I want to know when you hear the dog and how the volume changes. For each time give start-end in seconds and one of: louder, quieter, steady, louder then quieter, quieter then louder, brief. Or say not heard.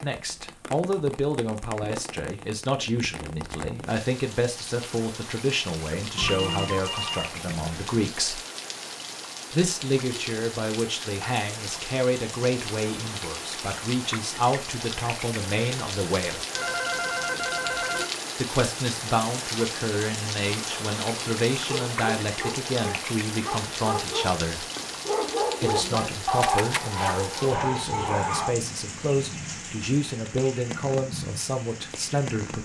21.6-28.6 louder.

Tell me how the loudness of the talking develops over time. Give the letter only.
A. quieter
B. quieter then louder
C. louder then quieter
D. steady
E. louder
D.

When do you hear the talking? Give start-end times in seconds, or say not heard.
0.0-8.4, 9.5-16.4, 18.4-24.6, 25.6-32.6.